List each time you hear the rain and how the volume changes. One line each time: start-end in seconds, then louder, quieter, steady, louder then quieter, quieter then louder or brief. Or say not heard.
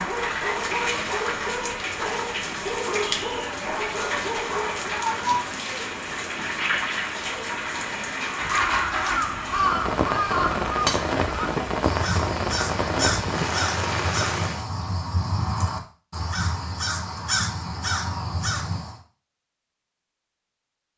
0.0-14.7 steady.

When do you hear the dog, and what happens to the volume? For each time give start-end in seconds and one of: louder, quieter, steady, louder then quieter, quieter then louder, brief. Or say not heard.
0.0-5.0 steady.